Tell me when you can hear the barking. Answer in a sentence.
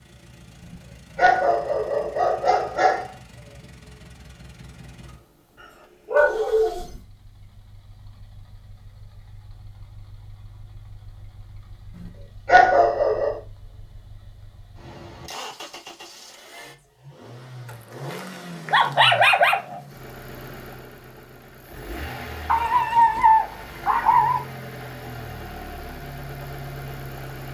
You can hear the barking from 0.7 to 3.1 s, from 6.1 to 6.8 s, from 11.9 to 13.4 s, from 18.1 to 19.8 s and from 22.4 to 24.4 s.